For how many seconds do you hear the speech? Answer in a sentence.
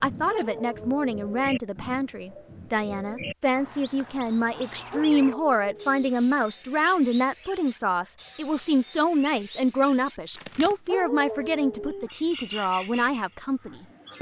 The speech can be heard for 14 seconds in total.